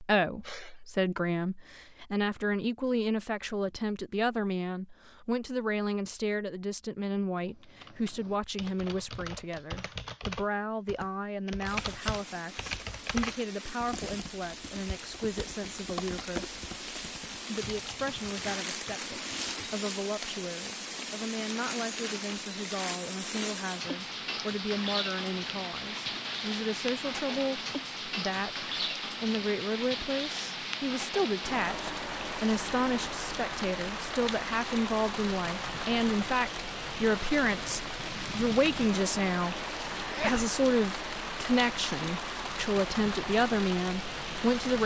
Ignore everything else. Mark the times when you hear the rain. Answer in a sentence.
The rain can be heard from 11.7 to 44.8 s.